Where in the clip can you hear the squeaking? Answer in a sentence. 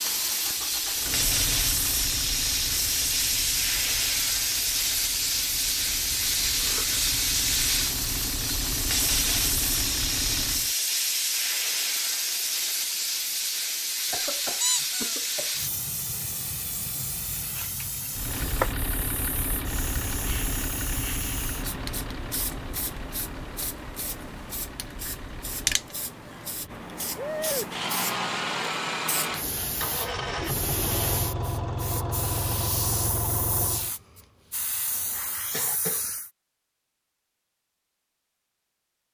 You can hear the squeaking from 14.6 to 15.2 s.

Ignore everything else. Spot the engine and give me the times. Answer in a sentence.
You can hear the engine from 0.0 to 10.8 s and from 18.1 to 34.0 s.